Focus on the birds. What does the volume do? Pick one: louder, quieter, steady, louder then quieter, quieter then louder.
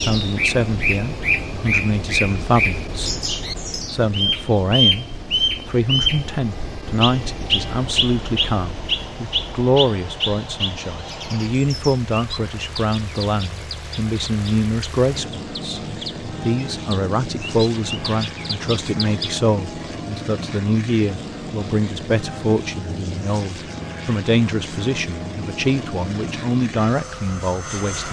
quieter.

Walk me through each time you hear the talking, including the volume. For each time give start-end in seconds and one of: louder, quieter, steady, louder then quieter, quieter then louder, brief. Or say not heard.
0.0-28.0 steady.